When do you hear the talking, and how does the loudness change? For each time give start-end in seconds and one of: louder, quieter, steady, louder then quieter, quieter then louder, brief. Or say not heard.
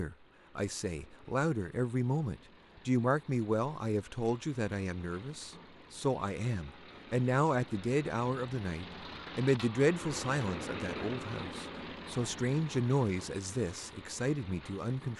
0.0-15.1 steady.